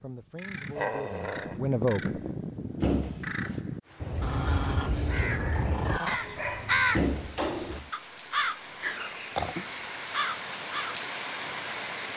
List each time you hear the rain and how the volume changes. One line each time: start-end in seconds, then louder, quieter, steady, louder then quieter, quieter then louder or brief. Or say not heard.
3.8-12.1 louder.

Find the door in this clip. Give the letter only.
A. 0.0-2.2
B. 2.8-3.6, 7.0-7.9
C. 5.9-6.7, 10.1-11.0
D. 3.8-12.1
B.